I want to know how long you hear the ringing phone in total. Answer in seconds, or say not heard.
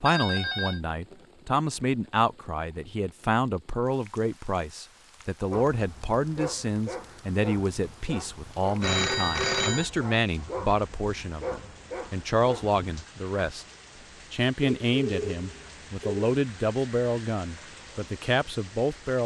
3 s.